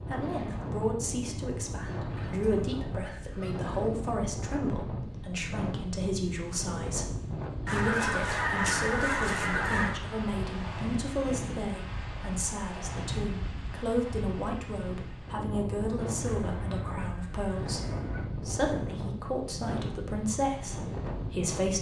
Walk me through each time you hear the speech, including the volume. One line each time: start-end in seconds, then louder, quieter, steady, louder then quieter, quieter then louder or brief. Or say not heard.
0.0-21.7 steady.